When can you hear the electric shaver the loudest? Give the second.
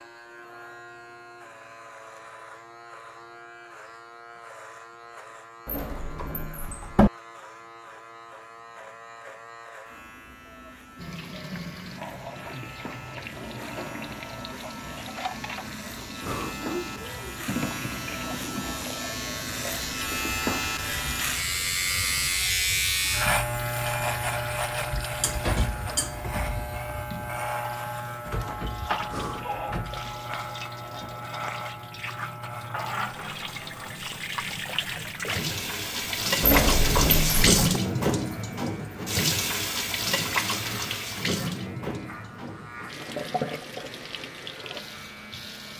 23 s.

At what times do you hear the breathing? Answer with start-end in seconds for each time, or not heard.
16.2-16.7, 29.1-29.6.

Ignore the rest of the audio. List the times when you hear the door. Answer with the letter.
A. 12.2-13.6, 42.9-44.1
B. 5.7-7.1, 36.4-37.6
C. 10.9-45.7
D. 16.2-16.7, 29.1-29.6
B.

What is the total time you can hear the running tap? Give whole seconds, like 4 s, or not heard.
35 s.